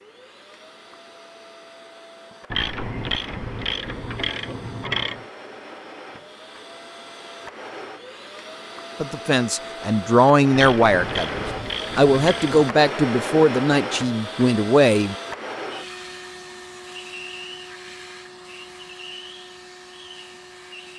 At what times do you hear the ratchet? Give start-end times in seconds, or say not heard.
2.5-5.2, 10.5-12.7.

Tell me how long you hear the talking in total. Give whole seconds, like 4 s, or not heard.
6 s.